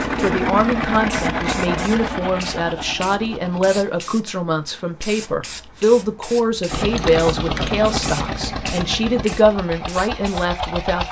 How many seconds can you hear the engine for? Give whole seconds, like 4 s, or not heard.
8 s.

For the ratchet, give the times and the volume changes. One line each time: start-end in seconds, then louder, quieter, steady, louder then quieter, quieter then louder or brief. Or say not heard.
not heard.